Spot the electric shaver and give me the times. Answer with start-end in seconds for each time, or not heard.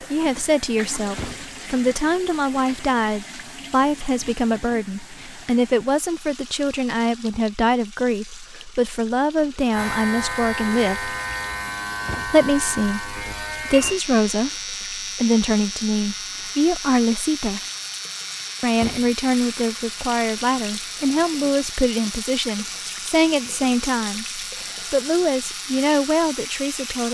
9.7-27.0.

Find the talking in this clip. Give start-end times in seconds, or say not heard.
0.0-11.2, 12.2-17.6, 18.6-27.0.